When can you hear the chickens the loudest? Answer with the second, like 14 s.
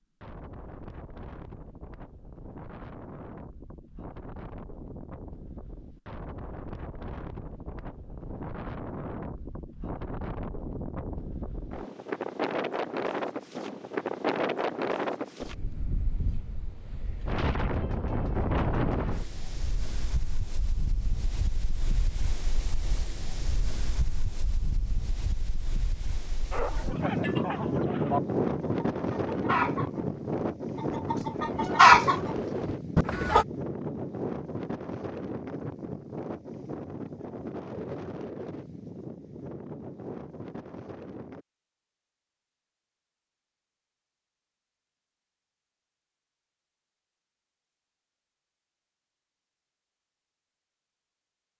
32 s.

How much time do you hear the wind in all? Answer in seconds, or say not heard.
41 s.